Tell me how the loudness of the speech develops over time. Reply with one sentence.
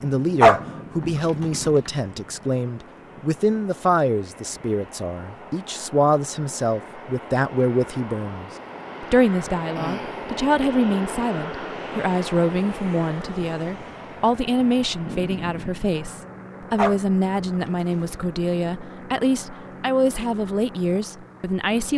The loudness of the speech stays about the same.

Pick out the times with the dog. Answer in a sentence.
You can hear the dog from 0.4 to 1.7 s and from 16.8 to 18.1 s.